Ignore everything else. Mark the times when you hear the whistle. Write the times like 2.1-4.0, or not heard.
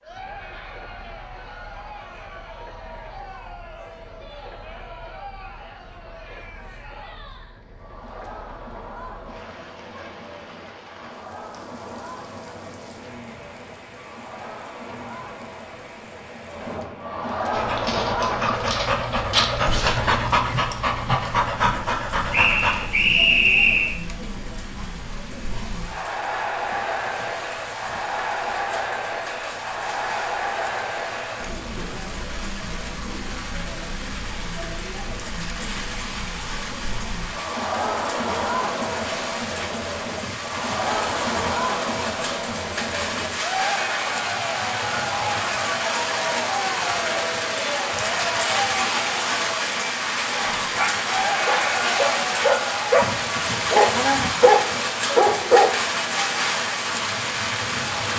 22.3-23.9.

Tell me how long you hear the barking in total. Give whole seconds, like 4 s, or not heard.
11 s.